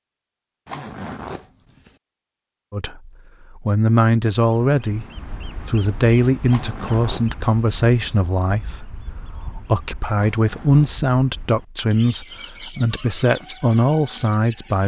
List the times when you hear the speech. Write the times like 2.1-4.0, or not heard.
2.7-14.8.